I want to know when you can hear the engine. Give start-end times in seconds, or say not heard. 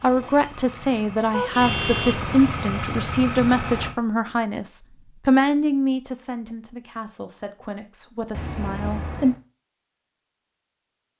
0.0-4.0.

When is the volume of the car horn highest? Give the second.
2 s.